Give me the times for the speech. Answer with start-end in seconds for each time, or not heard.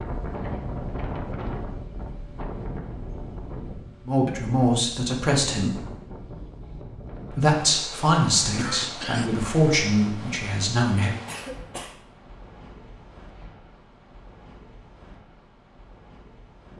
4.0-5.8, 7.3-11.2.